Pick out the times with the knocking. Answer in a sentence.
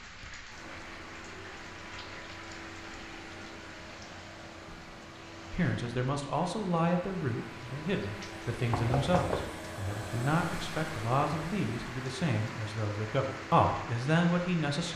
You can hear the knocking from 8.7 to 9.6 s.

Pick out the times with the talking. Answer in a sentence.
You can hear the talking from 5.5 to 14.9 s.